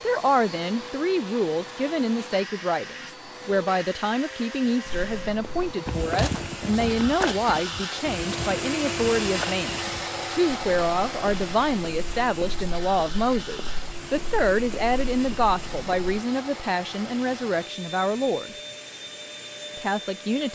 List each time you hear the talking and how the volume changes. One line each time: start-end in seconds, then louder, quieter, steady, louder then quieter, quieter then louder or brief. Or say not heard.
0.0-18.6 steady
19.8-20.5 brief.